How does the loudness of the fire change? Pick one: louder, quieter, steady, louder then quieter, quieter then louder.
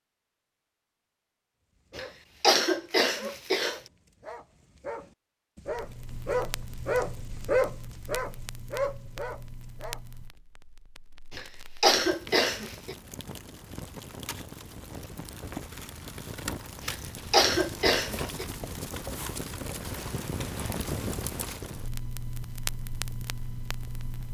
louder.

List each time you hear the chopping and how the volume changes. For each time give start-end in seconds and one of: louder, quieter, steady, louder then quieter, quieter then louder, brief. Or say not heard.
not heard.